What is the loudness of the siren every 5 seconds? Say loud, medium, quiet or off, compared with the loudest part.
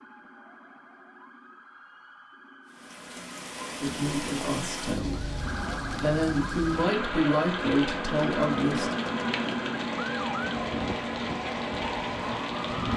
quiet, loud, loud.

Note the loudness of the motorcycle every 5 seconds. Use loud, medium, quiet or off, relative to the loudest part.
off, loud, medium.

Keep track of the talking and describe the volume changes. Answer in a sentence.
The volume of the talking goes down, then up.